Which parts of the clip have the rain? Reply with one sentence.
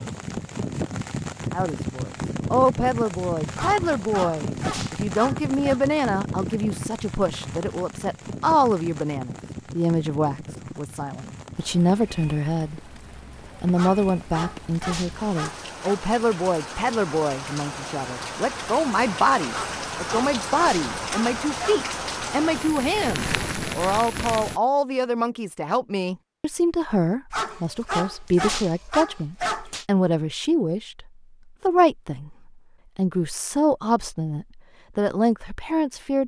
You can hear the rain from 0.0 to 24.6 s.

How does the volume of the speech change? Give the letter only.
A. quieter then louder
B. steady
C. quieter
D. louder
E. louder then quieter
B.